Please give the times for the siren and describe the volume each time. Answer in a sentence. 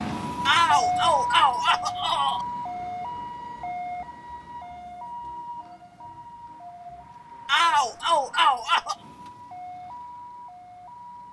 The siren can be heard from 0.0 to 11.2 s, getting quieter.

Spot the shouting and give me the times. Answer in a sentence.
The shouting can be heard from 0.5 to 2.5 s and from 7.5 to 8.9 s.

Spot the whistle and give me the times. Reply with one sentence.
You can't hear the whistle here.